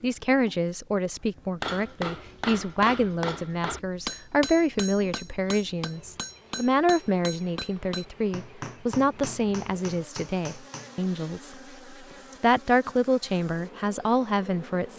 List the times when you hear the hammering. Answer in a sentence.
You can hear the hammering from 1.6 to 11.1 s.